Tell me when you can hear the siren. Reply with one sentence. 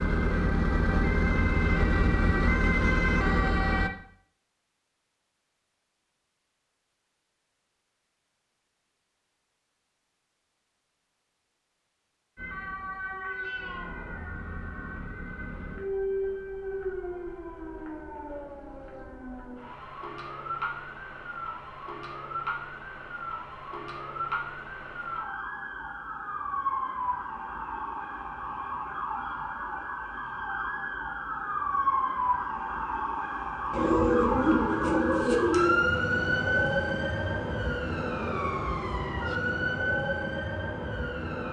The siren can be heard from 0.0 to 3.9 s and from 12.3 to 41.4 s.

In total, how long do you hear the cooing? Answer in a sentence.
The cooing can be heard for 2 seconds in total.